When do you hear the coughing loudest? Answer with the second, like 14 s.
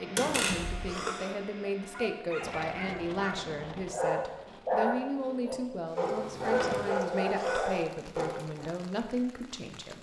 1 s.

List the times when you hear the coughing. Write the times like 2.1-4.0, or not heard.
0.8-1.4, 7.3-7.8.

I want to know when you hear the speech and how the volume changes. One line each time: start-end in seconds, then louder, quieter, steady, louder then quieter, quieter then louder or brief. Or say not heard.
0.0-9.9 steady.